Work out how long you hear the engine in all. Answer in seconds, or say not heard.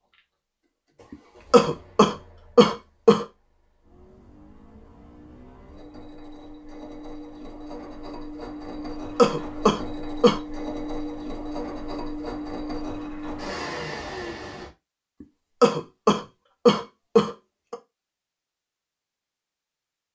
15 s.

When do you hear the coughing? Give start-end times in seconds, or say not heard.
1.1-3.2, 8.8-10.4, 15.2-17.8.